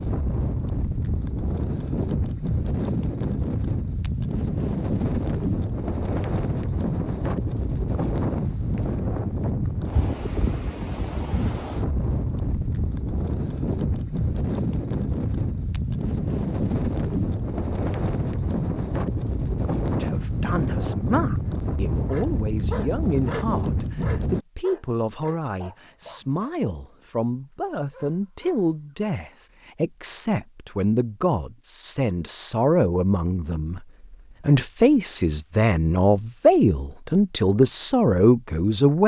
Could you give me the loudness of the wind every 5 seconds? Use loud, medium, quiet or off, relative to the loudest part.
loud, loud, loud, loud, loud, off, off, off.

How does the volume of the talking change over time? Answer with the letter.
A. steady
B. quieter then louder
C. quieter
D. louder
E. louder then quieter
D.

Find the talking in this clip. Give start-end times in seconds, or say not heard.
20.0-39.0.